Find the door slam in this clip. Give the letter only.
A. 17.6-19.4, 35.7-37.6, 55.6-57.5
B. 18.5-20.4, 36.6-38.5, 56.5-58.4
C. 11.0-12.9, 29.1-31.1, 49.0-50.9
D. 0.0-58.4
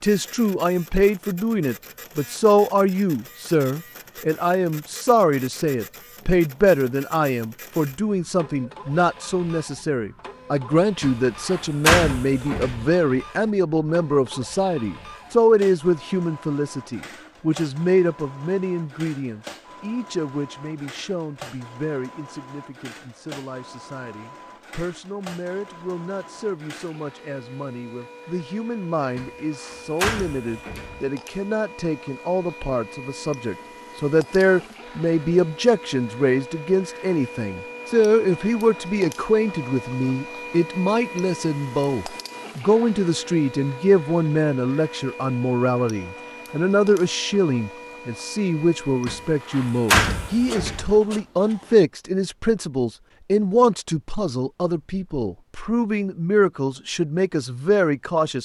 C.